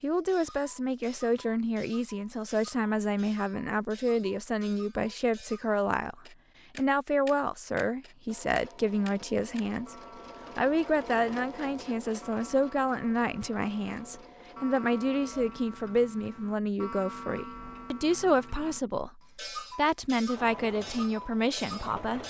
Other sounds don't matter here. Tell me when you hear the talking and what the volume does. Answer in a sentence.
You can hear the talking from 0.0 to 9.9 s, at a steady volume; and from 10.6 to 22.2 s, at a steady volume.